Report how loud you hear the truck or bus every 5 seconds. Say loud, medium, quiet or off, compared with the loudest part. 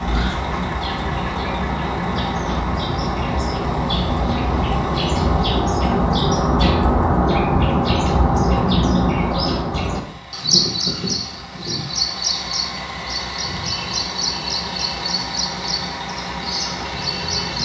loud, medium, loud, loud.